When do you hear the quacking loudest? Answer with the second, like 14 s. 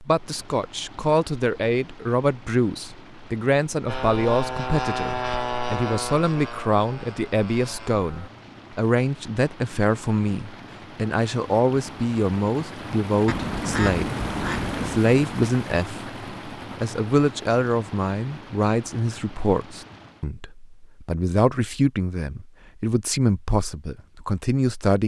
14 s.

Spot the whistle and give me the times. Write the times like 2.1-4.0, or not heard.
not heard.